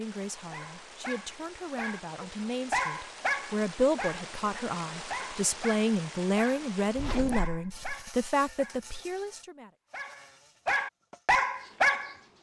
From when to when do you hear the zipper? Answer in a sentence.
The zipper can be heard from 7.0 to 8.0 s.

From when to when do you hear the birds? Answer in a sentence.
You can't hear the birds here.